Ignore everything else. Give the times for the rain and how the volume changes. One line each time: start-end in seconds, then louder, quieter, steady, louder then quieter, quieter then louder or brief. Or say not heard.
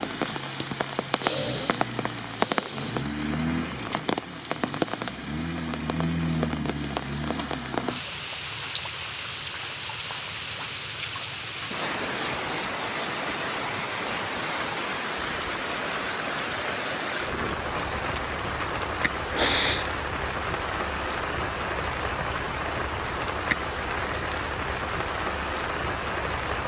0.0-26.6 steady.